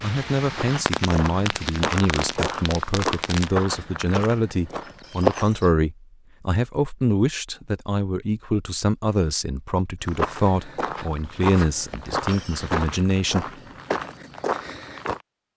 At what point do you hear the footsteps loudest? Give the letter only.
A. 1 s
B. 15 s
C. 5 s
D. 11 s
C.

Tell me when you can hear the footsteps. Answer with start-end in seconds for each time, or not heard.
0.5-5.7, 10.1-15.2.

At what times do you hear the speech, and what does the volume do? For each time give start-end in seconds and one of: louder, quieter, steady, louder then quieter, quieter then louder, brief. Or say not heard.
0.0-13.5 steady.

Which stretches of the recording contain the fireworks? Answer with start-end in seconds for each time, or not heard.
0.0-3.5.